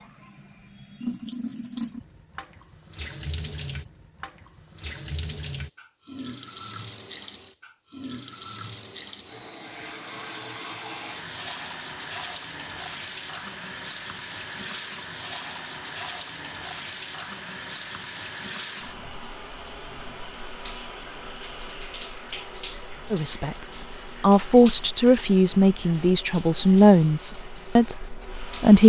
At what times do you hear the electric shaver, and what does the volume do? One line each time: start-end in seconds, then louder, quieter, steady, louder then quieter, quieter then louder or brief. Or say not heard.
not heard.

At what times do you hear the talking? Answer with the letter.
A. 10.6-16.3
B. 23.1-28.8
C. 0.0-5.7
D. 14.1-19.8
B.